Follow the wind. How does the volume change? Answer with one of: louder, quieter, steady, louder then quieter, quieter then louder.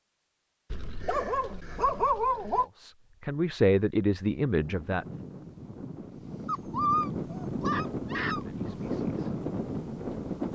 louder.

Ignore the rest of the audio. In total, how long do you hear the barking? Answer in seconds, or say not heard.
4 s.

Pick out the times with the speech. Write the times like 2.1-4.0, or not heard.
2.8-5.0, 8.4-9.3.